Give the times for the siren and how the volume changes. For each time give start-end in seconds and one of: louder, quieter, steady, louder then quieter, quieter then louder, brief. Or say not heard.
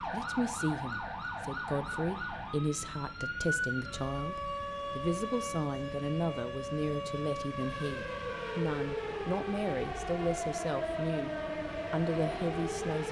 0.0-13.0 steady.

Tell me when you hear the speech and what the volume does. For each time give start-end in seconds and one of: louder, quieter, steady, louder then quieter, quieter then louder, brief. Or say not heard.
0.1-13.0 steady.